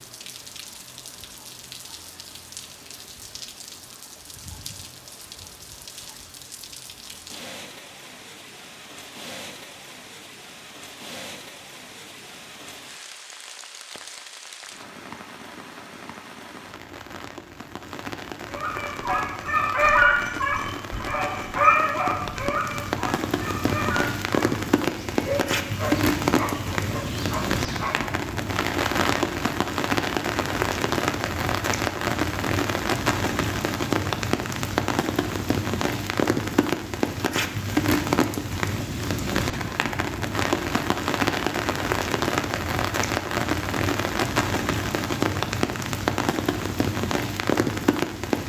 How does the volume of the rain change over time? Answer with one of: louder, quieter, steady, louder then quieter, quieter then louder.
louder.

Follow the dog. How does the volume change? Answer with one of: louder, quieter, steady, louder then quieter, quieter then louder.
quieter.